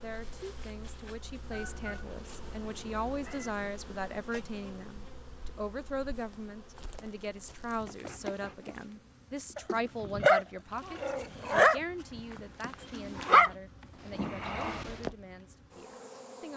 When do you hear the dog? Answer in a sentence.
The dog can be heard from 9.6 to 13.5 s and from 14.2 to 15.1 s.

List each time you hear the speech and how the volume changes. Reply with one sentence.
The speech can be heard from 0.0 to 16.5 s, getting quieter.